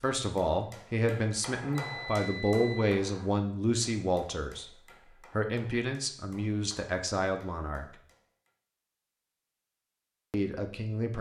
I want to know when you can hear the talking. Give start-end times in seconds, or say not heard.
0.0-4.7, 5.3-7.8, 10.3-11.1.